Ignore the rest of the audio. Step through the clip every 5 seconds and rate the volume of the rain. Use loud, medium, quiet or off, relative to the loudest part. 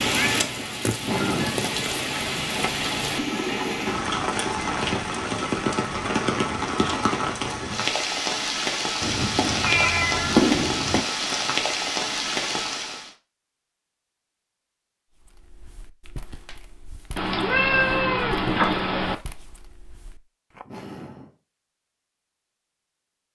loud, loud, loud, off, off.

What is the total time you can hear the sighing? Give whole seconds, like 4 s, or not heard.
2 s.